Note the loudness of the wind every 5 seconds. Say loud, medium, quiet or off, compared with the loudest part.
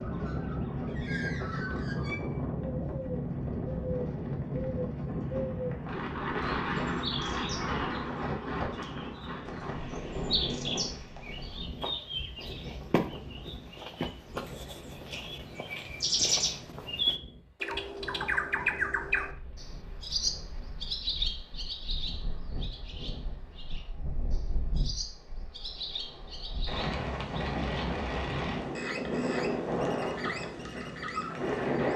loud, loud, medium, quiet, quiet, loud, loud.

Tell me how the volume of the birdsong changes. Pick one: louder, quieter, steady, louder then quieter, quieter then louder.
louder then quieter.